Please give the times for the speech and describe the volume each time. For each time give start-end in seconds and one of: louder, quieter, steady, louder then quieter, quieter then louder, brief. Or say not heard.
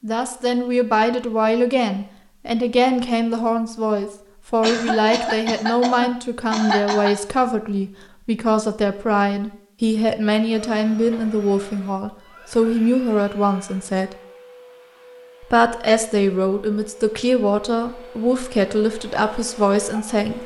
0.0-14.1 steady
15.4-20.4 steady.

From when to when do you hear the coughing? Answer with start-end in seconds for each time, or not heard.
4.6-7.2.